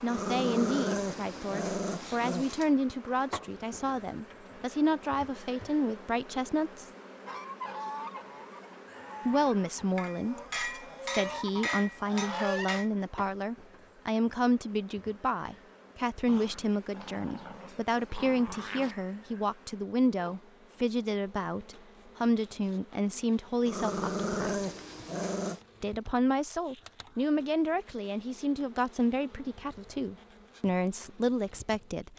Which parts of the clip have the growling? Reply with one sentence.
The growling can be heard from 0.1 to 2.7 s, from 16.2 to 18.9 s and from 23.6 to 25.6 s.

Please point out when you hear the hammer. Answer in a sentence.
The hammer can be heard from 9.9 to 12.9 s.